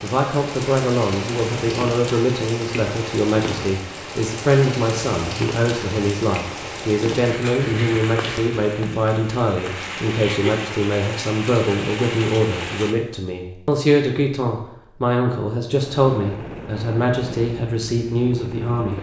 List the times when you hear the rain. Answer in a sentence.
The rain can be heard from 0.0 to 12.9 s.